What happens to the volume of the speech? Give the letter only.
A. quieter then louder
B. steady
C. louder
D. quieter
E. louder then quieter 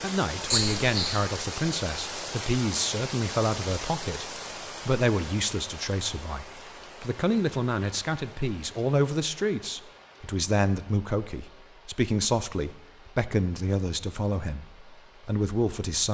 B.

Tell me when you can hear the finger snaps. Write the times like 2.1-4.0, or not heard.
not heard.